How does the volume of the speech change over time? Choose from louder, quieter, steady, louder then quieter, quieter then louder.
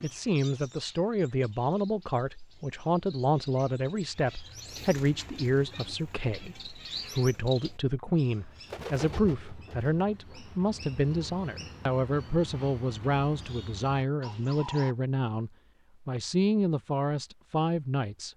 steady.